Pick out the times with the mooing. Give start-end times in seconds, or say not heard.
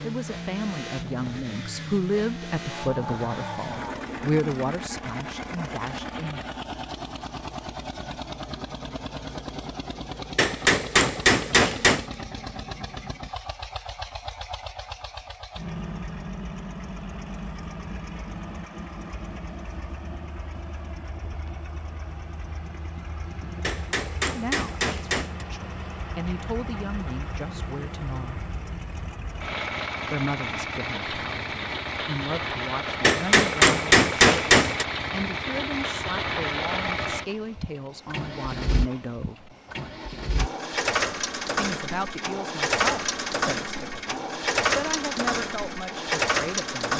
2.6-4.1.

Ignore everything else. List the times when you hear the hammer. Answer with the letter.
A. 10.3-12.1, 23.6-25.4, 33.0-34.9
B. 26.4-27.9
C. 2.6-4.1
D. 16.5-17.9
A.